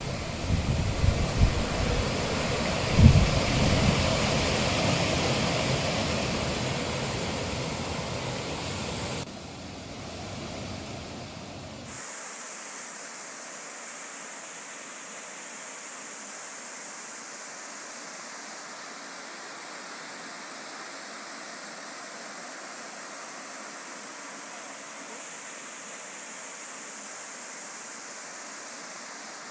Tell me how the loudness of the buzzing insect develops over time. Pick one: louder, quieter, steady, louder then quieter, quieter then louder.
louder.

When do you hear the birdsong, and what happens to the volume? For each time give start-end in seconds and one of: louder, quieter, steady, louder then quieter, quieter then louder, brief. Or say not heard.
not heard.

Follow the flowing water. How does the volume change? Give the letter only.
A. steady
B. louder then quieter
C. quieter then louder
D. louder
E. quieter
E.